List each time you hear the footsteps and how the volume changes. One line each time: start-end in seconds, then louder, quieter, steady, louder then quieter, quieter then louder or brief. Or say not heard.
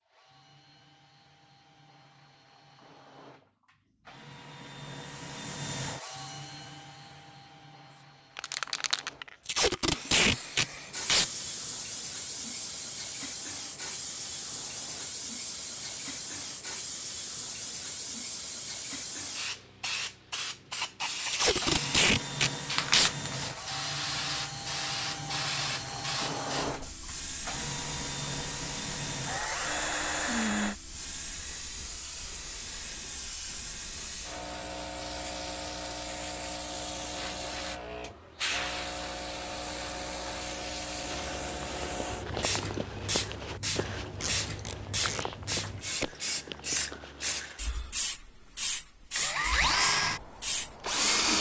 40.9-47.6 steady.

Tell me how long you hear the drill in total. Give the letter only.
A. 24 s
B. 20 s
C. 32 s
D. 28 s
D.